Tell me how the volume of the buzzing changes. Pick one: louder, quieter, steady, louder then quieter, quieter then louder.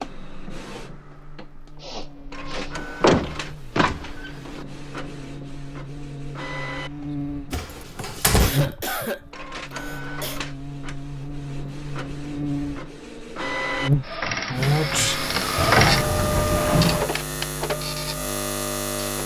louder.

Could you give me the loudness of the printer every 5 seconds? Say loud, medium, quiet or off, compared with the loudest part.
quiet, quiet, medium, loud.